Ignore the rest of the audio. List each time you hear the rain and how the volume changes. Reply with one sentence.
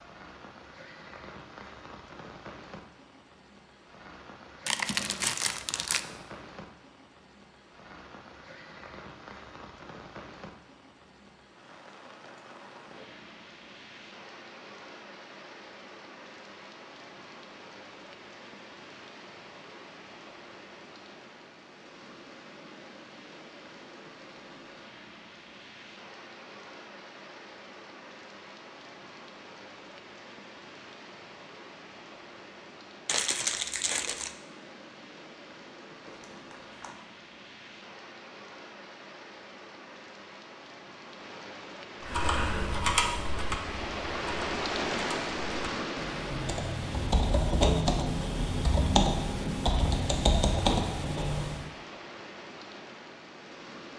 You can hear the rain from 0.0 to 53.9 s, getting louder.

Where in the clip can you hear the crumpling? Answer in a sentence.
You can hear the crumpling from 4.7 to 6.0 s, from 33.0 to 34.4 s and from 36.0 to 37.0 s.